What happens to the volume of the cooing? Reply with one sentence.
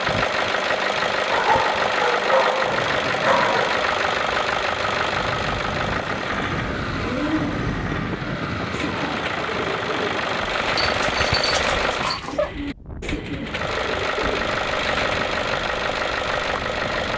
The loudness of the cooing stays about the same.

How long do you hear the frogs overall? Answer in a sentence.
The frogs can't be heard in this clip.